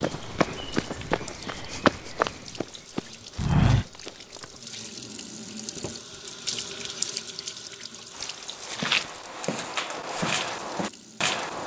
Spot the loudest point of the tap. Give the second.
7 s.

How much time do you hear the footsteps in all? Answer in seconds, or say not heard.
8 s.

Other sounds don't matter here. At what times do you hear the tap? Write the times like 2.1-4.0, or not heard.
0.0-11.6.